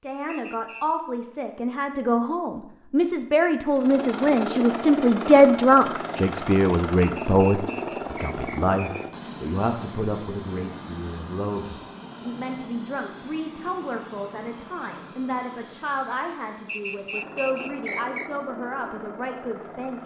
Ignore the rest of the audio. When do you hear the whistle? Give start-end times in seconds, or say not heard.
0.2-0.8, 7.0-9.1, 16.6-18.3.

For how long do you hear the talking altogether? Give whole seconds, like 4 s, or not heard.
20 s.